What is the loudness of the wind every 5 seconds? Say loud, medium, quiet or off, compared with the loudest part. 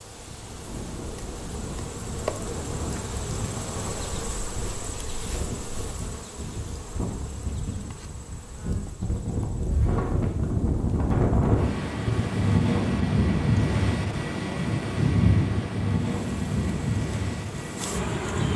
quiet, medium, loud, loud.